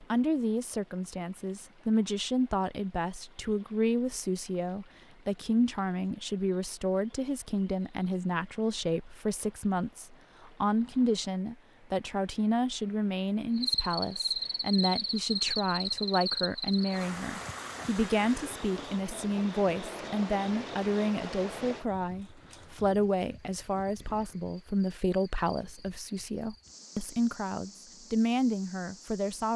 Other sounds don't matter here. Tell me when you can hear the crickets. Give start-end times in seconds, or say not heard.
13.6-29.5.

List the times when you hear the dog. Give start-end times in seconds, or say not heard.
not heard.